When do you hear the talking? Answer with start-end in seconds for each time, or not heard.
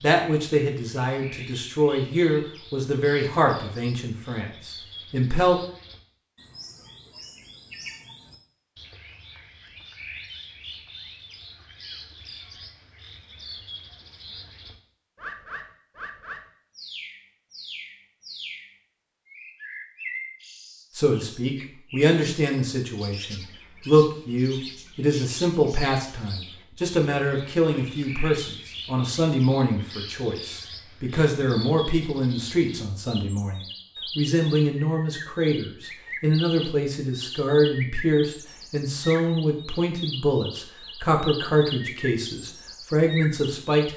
0.0-5.6, 20.9-43.9.